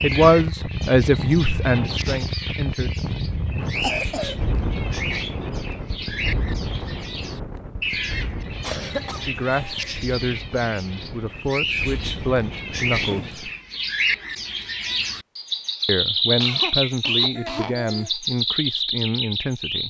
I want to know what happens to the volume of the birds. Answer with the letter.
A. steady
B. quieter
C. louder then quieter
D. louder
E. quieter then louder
D.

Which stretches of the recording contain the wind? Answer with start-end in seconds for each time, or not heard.
0.0-13.6.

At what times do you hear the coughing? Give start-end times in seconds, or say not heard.
3.8-4.3, 8.6-10.1, 16.4-18.1.